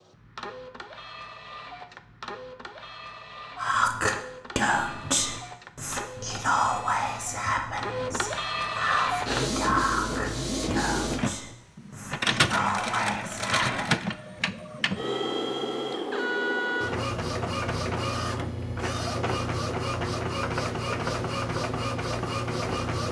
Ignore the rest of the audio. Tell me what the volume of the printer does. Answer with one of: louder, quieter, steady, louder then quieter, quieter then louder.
louder.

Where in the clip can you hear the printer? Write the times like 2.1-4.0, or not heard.
0.0-23.0.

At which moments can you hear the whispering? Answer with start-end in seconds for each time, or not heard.
3.5-14.0.